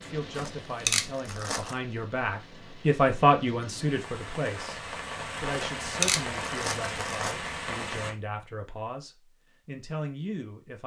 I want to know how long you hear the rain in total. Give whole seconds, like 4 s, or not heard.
8 s.